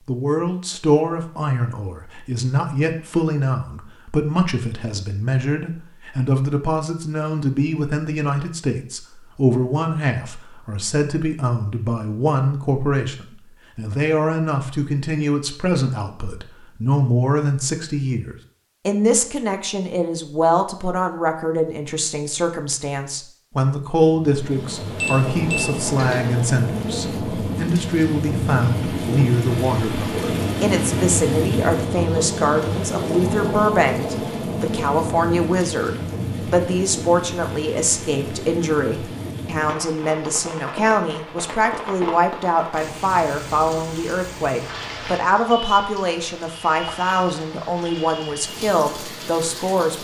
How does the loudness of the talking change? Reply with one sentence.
The volume of the talking stays about the same.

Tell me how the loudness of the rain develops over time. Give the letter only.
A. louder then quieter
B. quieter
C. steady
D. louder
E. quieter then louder
B.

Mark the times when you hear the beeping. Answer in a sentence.
You can hear the beeping from 24.9 to 26.4 s.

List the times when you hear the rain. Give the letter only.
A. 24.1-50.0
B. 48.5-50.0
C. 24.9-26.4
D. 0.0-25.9
A.